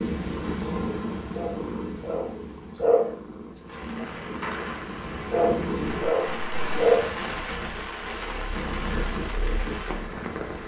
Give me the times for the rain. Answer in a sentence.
The rain can be heard from 3.6 to 10.6 s.